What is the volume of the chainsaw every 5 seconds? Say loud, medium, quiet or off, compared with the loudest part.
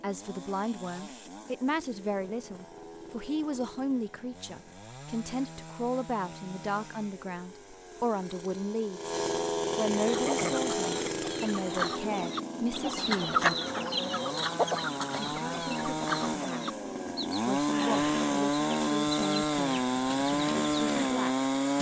quiet, medium, medium, loud, loud.